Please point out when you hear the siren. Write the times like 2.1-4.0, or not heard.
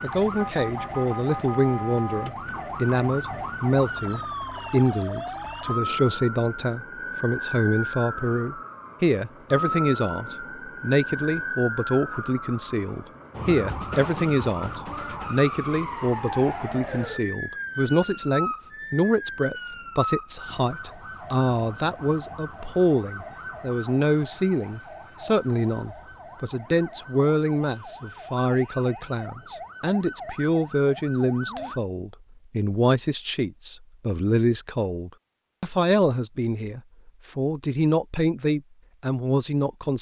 0.0-31.8.